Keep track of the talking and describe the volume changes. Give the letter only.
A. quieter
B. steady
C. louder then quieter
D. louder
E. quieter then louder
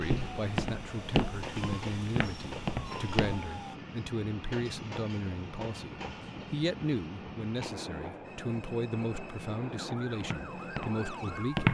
B.